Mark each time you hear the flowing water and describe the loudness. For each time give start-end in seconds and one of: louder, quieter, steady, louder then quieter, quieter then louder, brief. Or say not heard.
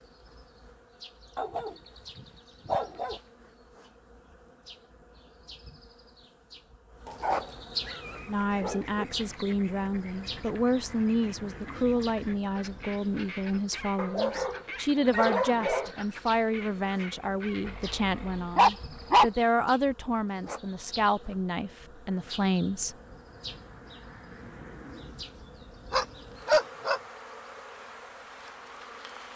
not heard.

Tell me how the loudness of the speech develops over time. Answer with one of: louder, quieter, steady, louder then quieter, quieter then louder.
steady.